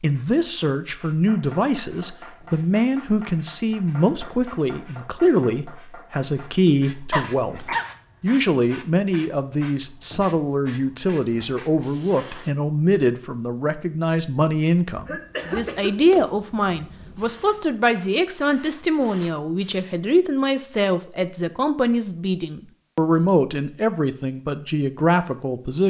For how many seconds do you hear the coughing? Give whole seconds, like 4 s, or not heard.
2 s.